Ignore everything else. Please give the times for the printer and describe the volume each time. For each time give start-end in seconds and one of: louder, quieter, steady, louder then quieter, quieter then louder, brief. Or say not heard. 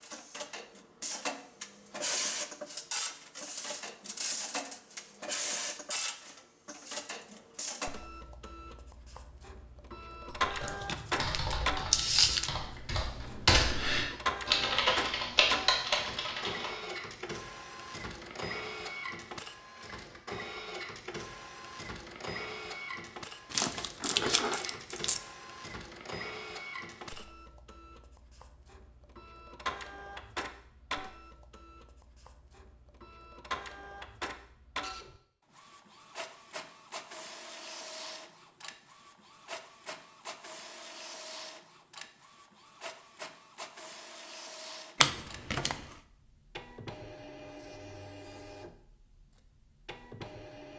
0.0-50.7 quieter.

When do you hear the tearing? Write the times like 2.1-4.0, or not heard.
10.6-12.5, 23.5-25.2, 45.0-46.0.